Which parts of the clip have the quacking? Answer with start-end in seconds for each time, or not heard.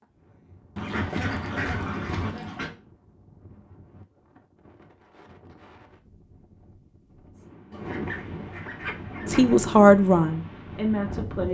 0.8-2.8, 7.7-9.6.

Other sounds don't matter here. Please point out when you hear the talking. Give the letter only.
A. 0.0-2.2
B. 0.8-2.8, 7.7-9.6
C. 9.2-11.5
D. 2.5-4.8
C.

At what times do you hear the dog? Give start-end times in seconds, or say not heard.
not heard.